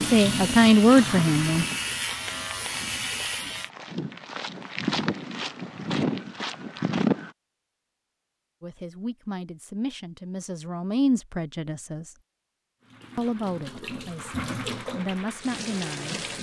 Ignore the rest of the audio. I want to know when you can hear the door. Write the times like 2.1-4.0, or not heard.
not heard.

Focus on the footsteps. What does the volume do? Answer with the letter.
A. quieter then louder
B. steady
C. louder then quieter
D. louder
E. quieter
D.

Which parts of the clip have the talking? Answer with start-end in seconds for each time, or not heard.
0.1-1.6, 8.6-12.1, 13.2-16.1.